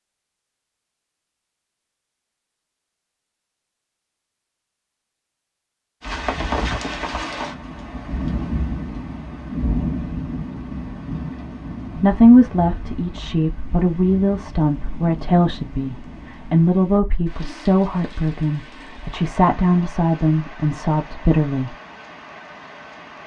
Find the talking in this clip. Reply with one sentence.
The talking can be heard from 11.9 to 21.8 s.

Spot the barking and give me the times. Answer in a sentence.
The barking can't be heard in this clip.